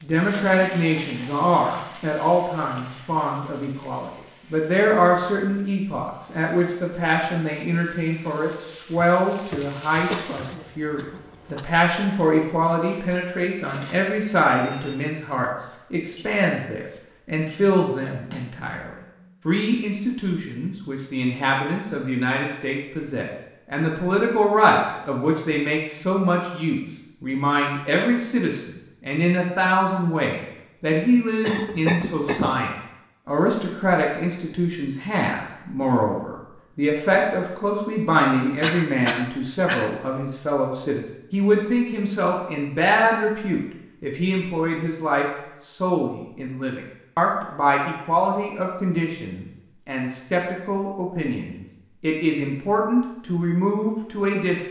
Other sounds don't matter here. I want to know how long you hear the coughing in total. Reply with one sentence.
The coughing can be heard for 4 seconds in total.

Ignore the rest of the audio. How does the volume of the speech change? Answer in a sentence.
The loudness of the speech stays about the same.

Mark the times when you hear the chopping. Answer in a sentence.
The chopping can't be heard in this clip.